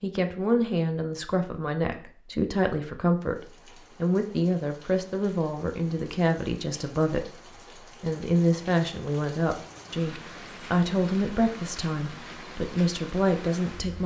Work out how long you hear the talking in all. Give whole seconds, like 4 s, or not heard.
13 s.